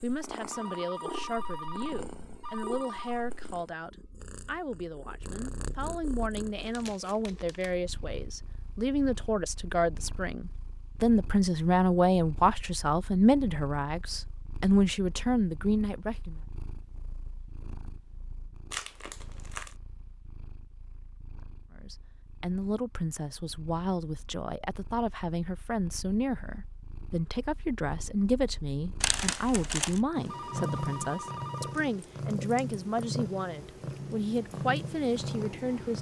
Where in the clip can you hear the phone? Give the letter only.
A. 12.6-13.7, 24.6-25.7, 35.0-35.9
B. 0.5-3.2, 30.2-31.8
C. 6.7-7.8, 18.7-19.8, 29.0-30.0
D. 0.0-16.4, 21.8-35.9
B.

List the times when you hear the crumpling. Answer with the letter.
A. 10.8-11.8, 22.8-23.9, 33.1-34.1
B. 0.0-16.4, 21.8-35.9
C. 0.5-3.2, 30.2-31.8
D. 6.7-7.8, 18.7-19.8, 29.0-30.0
D.